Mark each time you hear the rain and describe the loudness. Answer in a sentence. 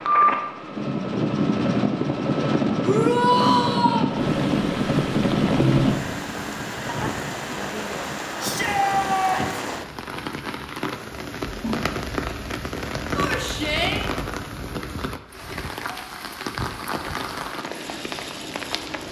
You can hear the rain from 4.1 to 19.0 s, at a steady volume.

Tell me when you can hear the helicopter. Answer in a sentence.
You can hear the helicopter from 0.0 to 6.2 s.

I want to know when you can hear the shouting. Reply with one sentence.
You can hear the shouting from 2.8 to 4.0 s, from 8.4 to 9.7 s and from 13.2 to 14.1 s.